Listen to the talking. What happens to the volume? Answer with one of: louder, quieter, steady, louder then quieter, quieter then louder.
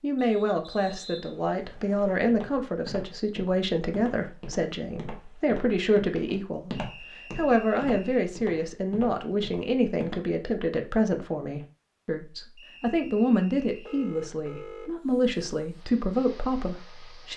steady.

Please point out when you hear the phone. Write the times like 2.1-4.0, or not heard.
13.8-14.9.